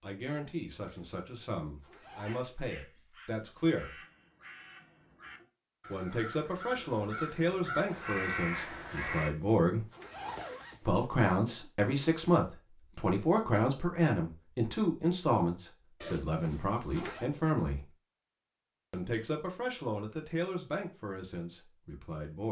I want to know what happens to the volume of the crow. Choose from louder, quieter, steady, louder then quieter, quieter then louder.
louder.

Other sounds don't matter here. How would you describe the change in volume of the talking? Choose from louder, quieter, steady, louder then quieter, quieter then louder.
louder then quieter.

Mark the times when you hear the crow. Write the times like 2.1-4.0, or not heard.
2.2-9.3.